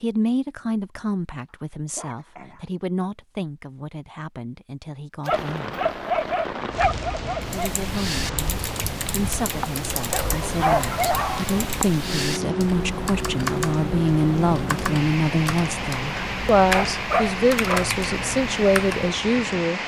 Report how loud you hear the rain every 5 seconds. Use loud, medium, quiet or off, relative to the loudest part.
off, loud, loud, loud.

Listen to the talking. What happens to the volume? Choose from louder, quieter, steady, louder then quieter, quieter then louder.
quieter then louder.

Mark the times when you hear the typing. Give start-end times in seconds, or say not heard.
7.5-19.1.